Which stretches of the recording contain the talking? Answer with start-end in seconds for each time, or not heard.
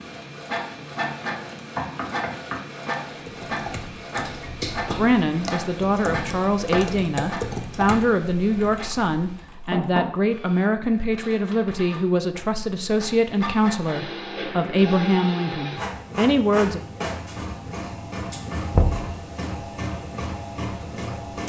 5.0-16.8.